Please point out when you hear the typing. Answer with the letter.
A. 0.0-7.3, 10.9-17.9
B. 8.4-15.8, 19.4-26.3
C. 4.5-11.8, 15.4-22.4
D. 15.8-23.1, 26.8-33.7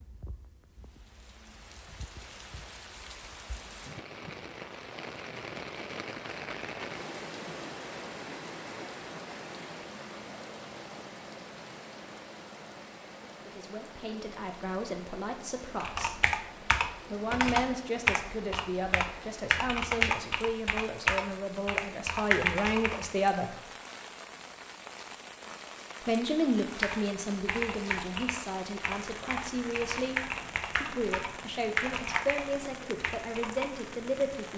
D.